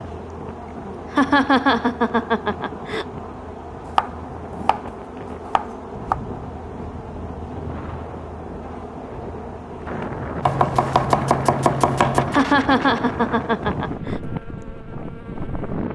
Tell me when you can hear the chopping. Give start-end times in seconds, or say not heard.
3.9-4.8, 5.5-6.2, 10.4-12.4.